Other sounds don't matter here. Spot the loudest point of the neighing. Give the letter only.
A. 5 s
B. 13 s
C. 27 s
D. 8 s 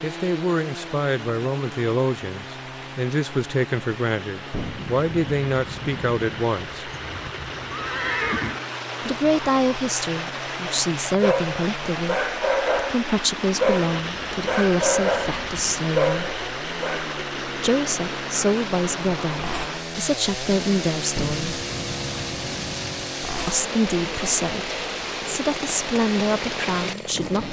D.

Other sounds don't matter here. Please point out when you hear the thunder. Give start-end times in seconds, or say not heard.
4.5-6.2, 21.1-23.1.